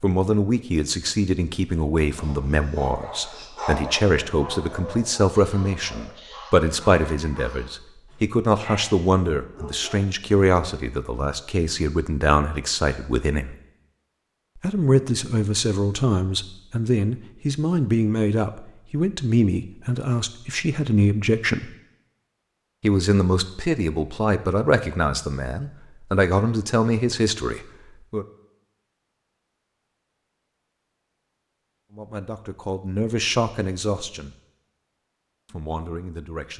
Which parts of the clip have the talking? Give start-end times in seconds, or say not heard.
0.0-13.6, 14.6-21.7, 22.8-28.2, 31.9-34.4, 35.5-36.5.